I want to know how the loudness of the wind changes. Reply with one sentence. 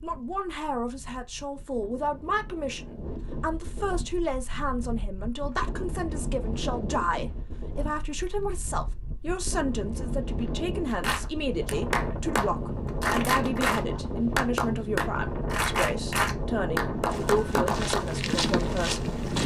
The loudness of the wind goes up.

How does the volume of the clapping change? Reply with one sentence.
The volume of the clapping stays about the same.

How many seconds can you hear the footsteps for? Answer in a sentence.
The footsteps can be heard for 2 seconds in total.